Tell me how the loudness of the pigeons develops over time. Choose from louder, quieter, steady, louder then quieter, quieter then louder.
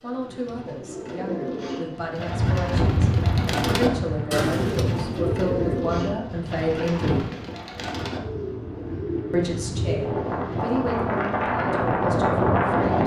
louder then quieter.